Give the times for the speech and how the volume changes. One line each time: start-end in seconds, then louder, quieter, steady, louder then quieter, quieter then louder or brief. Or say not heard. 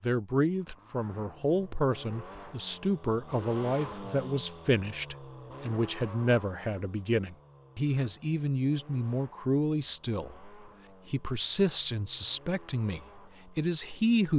0.0-14.3 steady.